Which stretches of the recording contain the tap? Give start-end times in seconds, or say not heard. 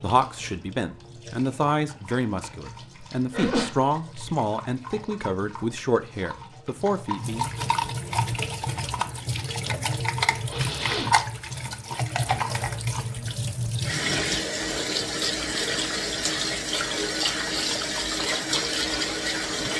0.0-19.7.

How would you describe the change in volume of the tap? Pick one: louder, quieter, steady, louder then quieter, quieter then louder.
louder.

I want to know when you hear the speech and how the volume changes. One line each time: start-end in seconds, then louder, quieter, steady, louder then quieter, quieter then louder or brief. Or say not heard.
0.0-7.5 steady.